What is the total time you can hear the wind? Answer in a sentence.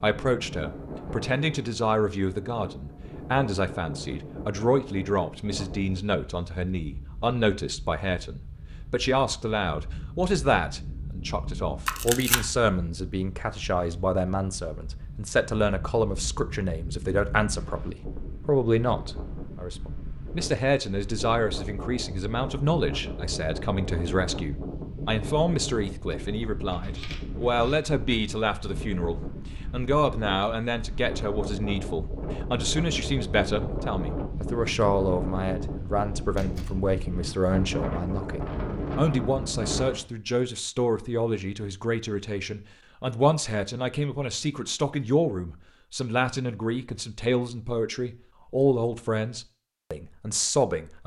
The wind can be heard for 40 seconds in total.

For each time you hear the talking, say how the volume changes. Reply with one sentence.
You can hear the talking from 0.0 to 51.0 s, at a steady volume.